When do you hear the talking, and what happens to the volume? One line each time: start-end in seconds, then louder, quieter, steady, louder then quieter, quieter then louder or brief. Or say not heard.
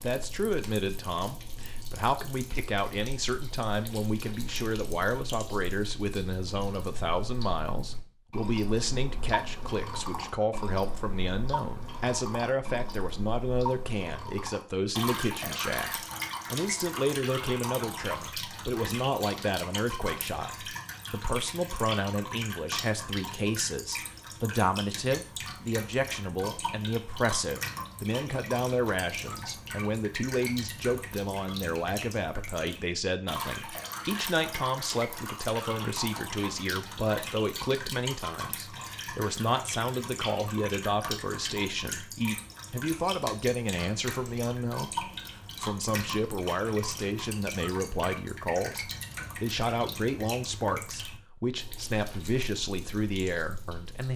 0.0-54.1 steady.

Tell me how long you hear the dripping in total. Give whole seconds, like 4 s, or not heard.
54 s.